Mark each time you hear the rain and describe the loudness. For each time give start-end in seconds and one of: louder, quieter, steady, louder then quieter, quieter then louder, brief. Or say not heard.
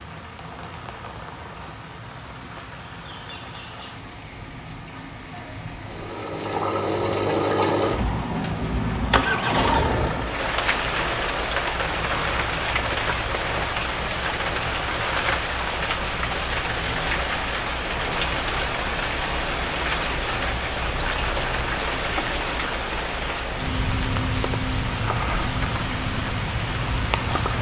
0.0-27.5 louder.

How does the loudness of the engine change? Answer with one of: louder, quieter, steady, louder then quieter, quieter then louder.
quieter.